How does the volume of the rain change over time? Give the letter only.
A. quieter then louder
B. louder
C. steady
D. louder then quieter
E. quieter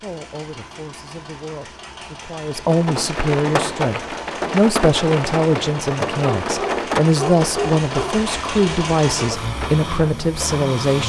E.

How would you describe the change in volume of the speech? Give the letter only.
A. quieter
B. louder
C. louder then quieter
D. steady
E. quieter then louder
B.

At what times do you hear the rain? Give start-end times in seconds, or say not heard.
2.6-11.0.